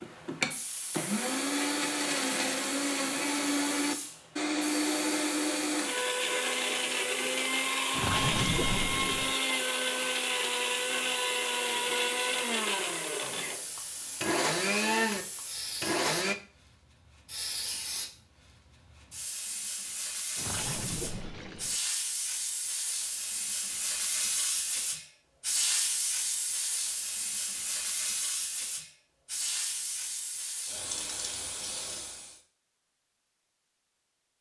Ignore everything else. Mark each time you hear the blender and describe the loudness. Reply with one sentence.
You can hear the blender from 0.0 to 16.4 s, at a steady volume.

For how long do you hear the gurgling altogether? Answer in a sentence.
You can hear the gurgling for 3 seconds altogether.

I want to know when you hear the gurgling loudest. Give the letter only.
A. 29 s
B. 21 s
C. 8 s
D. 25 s
C.